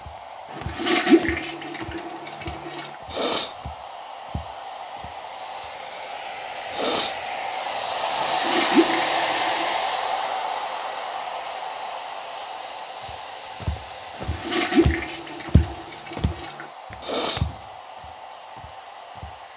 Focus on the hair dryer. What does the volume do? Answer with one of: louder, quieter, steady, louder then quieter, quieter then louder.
louder then quieter.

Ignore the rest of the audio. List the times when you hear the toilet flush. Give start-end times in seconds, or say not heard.
0.5-2.9, 8.2-9.8, 14.2-16.6.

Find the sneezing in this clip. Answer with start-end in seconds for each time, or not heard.
3.1-3.5, 6.7-7.2, 17.0-17.4.